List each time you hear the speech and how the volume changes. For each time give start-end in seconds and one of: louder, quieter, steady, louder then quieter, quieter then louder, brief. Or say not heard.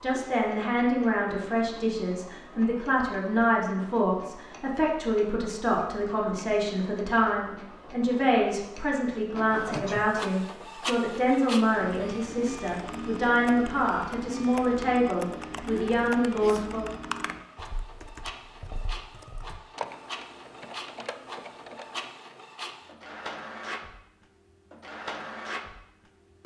0.0-16.9 steady.